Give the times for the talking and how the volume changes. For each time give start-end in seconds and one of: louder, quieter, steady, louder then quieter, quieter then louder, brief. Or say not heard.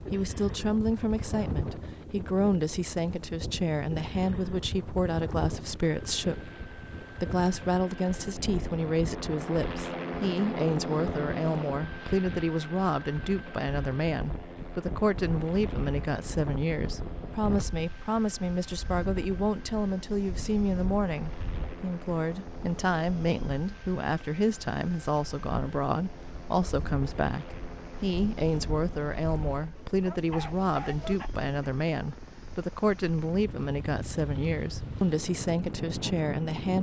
0.0-36.7 steady.